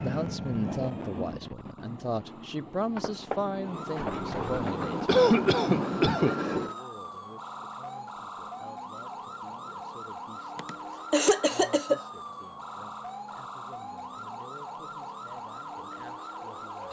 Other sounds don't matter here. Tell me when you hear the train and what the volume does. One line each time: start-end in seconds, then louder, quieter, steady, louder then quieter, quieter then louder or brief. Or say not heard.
0.0-6.8 quieter then louder.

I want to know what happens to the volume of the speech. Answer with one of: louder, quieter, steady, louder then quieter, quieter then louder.
quieter.